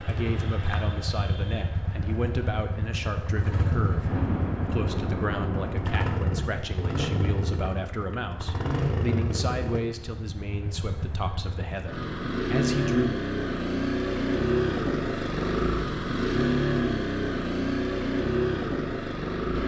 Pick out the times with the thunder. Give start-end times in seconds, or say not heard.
3.8-6.5.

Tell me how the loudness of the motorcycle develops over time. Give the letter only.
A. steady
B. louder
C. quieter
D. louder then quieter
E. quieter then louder
B.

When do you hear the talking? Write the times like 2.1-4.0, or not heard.
0.1-13.1.